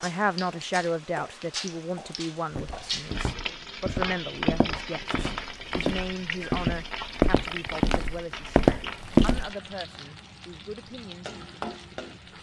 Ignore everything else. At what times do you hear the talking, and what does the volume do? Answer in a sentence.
You can hear the talking from 0.0 to 12.3 s, getting quieter.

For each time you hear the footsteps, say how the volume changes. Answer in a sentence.
You can hear the footsteps from 2.5 to 9.5 s, getting louder.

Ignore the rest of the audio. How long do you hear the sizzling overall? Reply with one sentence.
You can hear the sizzling for 12 seconds altogether.